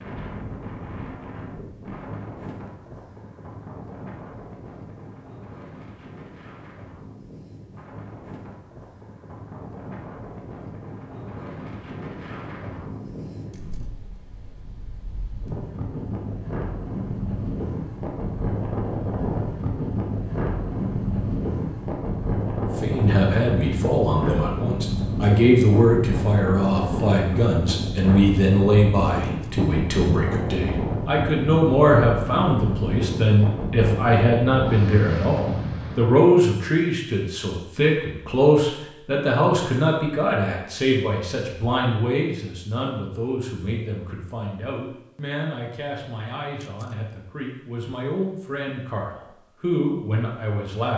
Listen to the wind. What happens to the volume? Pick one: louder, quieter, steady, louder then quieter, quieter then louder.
louder.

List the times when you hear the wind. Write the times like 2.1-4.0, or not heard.
0.0-36.1.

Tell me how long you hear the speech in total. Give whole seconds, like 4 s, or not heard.
28 s.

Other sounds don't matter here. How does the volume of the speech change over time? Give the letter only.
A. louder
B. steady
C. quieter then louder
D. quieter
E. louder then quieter
D.